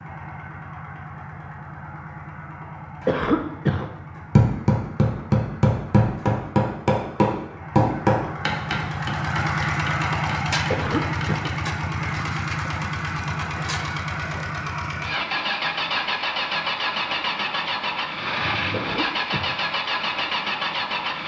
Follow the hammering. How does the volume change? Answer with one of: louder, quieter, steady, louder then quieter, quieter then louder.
quieter.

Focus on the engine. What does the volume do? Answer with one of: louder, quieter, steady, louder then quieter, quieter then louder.
louder.